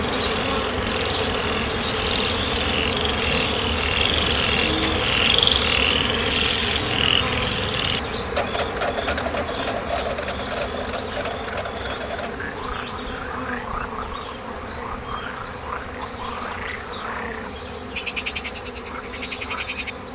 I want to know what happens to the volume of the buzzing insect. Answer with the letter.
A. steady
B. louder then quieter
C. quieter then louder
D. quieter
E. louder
D.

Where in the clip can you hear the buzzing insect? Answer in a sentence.
You can hear the buzzing insect from 0.0 to 20.1 s.